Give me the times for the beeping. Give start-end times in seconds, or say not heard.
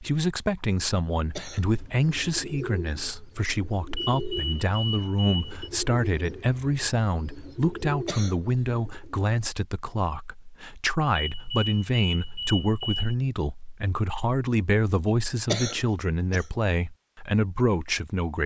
4.0-5.7, 11.2-13.1.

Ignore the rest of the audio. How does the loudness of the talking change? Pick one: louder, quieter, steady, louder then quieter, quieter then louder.
steady.